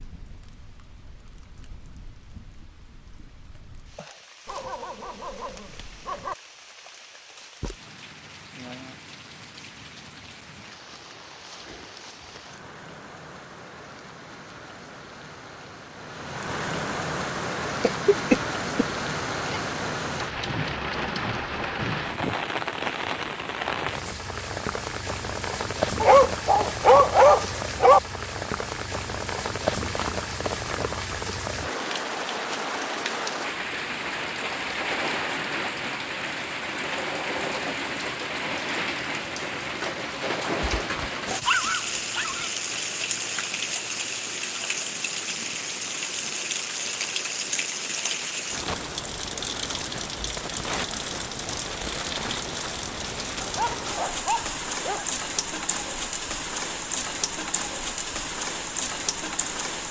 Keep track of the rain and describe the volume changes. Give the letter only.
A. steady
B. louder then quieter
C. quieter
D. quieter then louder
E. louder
E.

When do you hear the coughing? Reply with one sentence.
You can hear the coughing from 17.8 to 18.9 s.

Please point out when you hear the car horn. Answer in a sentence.
You can't hear the car horn here.